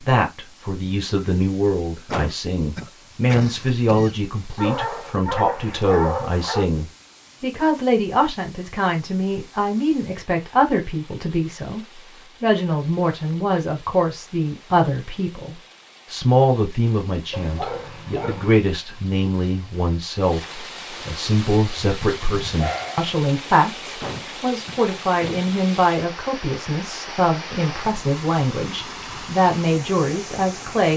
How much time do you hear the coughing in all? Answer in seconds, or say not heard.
4 s.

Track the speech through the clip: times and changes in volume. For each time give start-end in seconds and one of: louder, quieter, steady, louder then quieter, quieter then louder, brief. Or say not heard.
0.0-30.9 steady.